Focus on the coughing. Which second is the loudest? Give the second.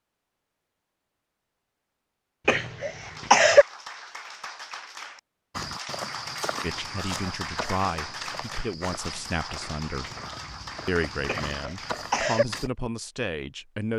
3 s.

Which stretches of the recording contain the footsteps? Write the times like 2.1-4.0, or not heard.
5.5-12.7.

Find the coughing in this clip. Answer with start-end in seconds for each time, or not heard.
2.5-3.6, 11.2-12.4.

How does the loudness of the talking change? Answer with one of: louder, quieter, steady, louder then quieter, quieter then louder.
steady.